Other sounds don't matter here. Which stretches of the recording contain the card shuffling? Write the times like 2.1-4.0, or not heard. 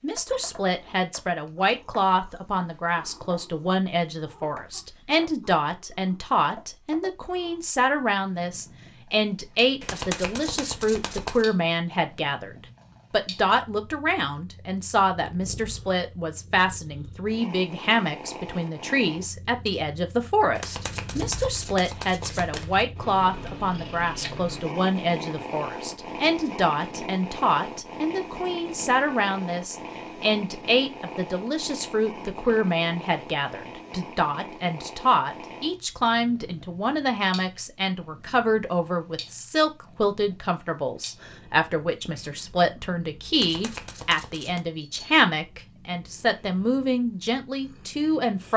9.8-11.4, 20.6-22.9, 43.3-44.6.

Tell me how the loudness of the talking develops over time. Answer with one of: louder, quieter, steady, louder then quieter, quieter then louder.
steady.